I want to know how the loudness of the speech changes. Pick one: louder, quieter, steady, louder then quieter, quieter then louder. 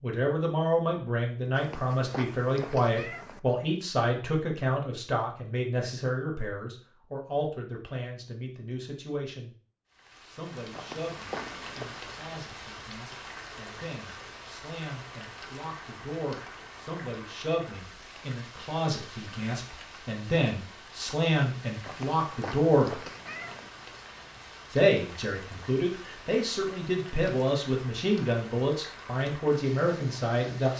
quieter then louder.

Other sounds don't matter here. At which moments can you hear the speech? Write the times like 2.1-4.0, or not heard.
0.0-9.6, 10.2-23.0, 24.7-30.7.